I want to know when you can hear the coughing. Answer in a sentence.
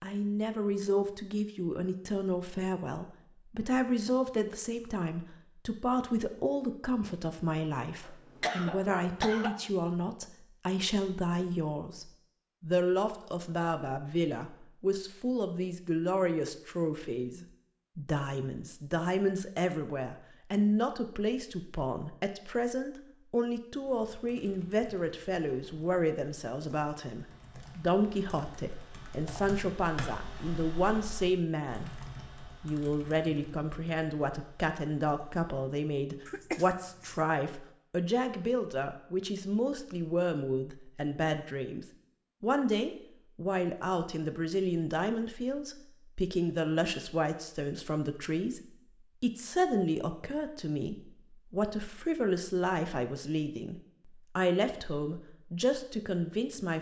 The coughing can be heard from 8.0 to 9.7 s and from 36.2 to 37.1 s.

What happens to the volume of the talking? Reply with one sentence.
The volume of the talking stays about the same.